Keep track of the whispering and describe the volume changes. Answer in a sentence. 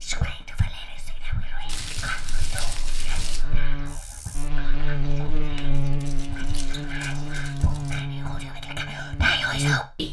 The volume of the whispering goes down, then up.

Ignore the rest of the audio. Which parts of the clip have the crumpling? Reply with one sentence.
The crumpling can be heard from 1.6 to 3.5 s and from 5.5 to 8.0 s.